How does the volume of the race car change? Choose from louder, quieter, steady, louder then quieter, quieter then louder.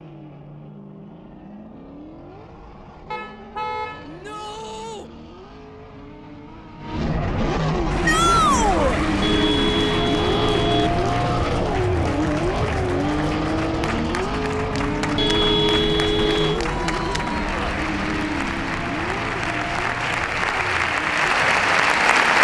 louder then quieter.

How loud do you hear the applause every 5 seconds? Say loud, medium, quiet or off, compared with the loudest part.
off, quiet, quiet, medium, loud.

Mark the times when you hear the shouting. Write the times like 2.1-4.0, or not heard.
4.0-5.1, 8.1-9.0, 16.6-17.6.